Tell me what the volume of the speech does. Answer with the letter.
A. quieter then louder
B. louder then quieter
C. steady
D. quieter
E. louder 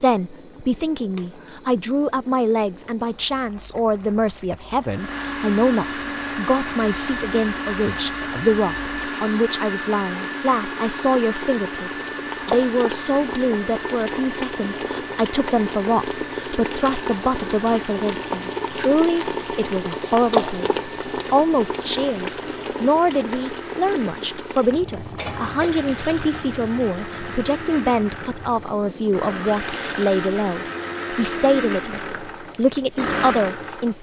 C.